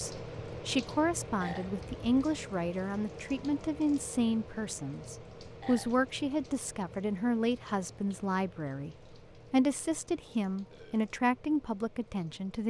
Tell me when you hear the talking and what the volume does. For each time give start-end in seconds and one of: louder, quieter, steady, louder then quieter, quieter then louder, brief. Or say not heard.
0.0-12.6 steady.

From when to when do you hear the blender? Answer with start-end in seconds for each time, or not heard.
not heard.